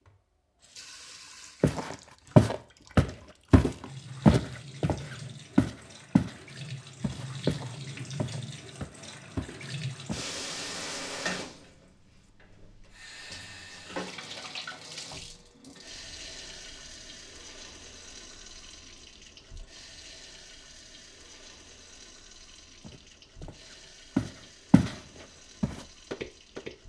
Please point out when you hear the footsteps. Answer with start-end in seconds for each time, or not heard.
1.6-6.3, 7.0-10.2, 22.8-24.9, 25.6-26.8.